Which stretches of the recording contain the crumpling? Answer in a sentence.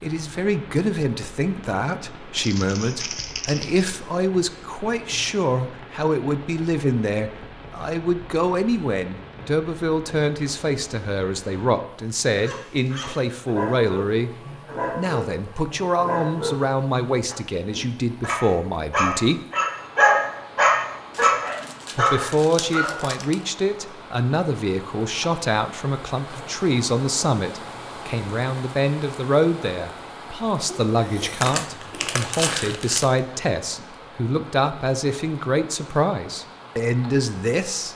You can hear the crumpling from 2.4 to 3.9 s, from 21.1 to 23.4 s and from 30.6 to 33.2 s.